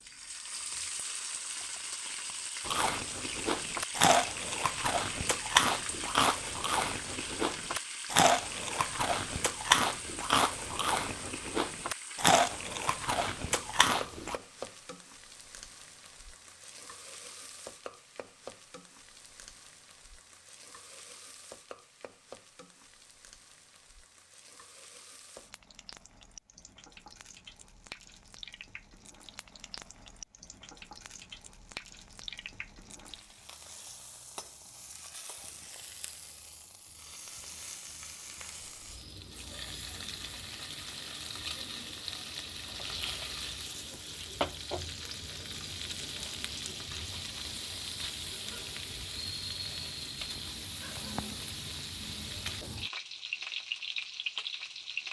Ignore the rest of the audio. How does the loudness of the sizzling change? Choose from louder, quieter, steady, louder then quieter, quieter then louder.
quieter then louder.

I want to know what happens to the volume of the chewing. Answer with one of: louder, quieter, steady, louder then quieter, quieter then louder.
steady.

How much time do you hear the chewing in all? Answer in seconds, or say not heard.
12 s.